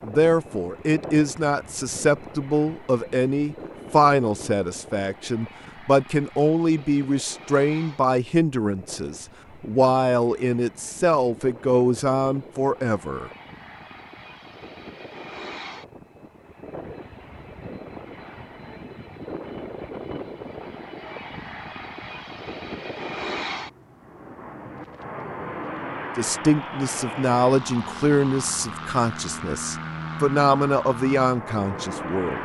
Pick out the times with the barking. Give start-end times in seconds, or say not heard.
not heard.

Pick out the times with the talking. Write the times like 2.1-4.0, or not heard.
0.0-13.3, 26.1-32.3.